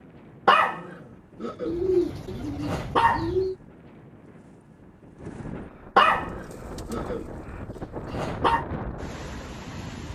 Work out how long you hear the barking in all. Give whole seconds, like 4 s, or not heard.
4 s.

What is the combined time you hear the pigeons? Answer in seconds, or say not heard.
4 s.